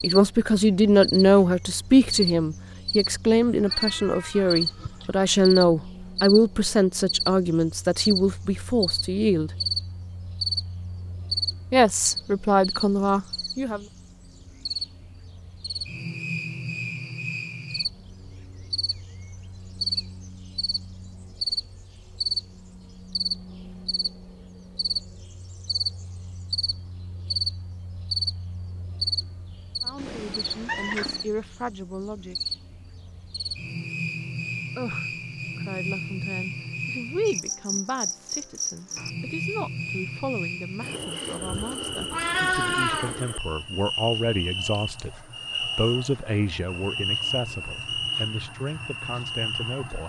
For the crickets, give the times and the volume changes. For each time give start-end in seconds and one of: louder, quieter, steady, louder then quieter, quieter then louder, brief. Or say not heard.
0.0-50.0 steady.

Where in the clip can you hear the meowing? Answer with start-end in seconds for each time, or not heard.
3.5-5.1, 29.9-31.2, 42.1-43.2.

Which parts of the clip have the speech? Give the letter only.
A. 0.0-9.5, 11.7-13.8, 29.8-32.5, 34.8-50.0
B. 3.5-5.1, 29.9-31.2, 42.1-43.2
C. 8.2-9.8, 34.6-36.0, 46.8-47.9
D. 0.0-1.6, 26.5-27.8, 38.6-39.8
A.